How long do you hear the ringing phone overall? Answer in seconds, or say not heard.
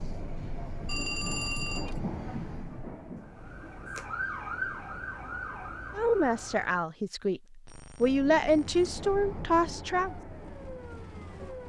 2 s.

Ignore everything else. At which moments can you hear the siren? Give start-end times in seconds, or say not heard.
3.1-6.8, 9.9-11.6.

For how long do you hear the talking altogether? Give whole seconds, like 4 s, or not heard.
4 s.